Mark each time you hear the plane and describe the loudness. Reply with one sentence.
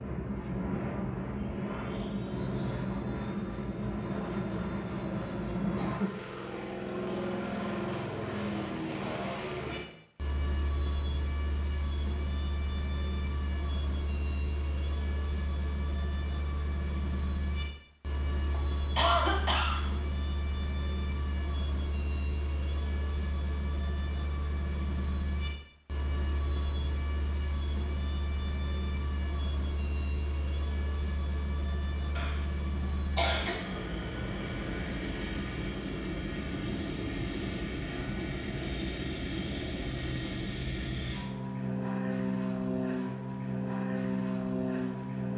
The plane can be heard from 0.0 to 45.3 s, getting quieter then louder.